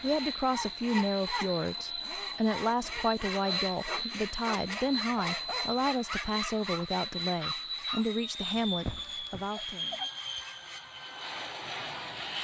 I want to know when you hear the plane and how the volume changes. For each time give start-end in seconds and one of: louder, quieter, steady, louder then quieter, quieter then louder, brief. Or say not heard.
0.0-12.4 steady.